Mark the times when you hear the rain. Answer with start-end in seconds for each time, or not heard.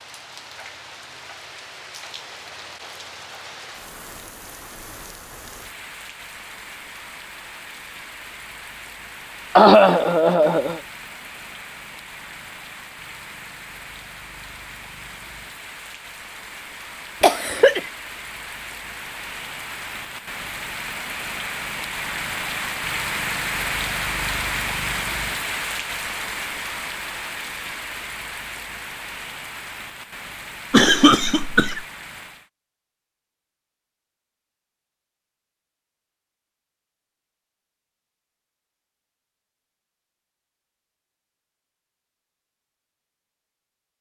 0.0-32.5.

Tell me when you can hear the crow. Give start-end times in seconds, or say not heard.
not heard.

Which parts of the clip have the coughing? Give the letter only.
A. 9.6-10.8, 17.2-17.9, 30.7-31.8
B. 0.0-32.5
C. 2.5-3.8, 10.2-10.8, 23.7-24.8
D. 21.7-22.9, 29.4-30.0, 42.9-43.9
A.